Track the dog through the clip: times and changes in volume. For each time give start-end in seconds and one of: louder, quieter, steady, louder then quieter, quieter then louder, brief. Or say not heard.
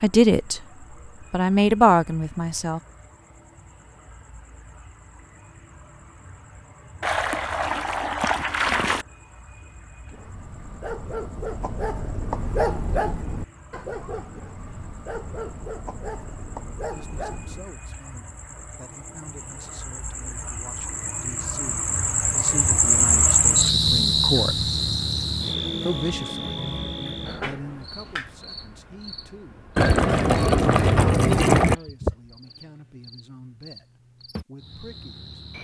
10.1-17.6 louder then quieter.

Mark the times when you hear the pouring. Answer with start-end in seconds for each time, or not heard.
7.0-9.1, 29.8-31.8.